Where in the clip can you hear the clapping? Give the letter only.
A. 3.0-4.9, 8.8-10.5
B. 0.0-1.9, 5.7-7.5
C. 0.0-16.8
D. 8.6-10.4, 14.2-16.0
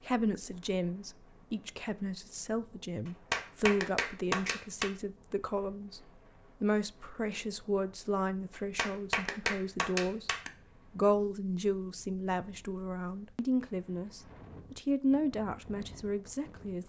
A.